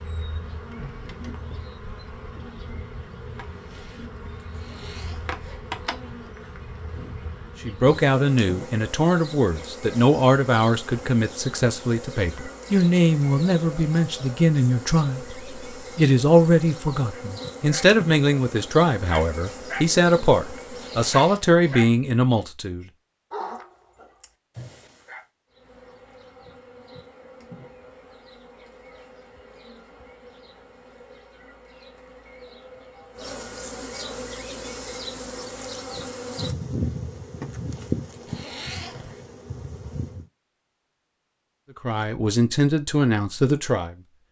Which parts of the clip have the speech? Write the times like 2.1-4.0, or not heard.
7.7-15.3, 15.9-22.9, 41.8-44.0.